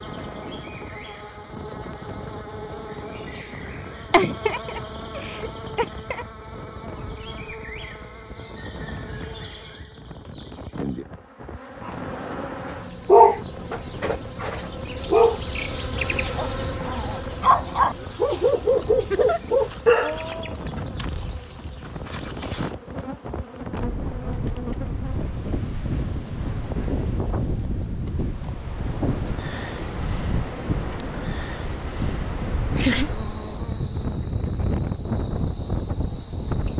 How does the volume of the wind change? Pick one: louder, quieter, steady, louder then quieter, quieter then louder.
louder.